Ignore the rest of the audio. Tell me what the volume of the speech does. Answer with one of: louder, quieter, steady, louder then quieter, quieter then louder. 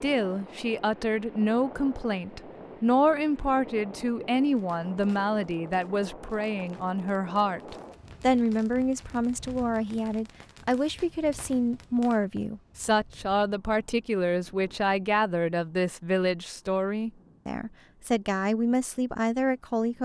steady.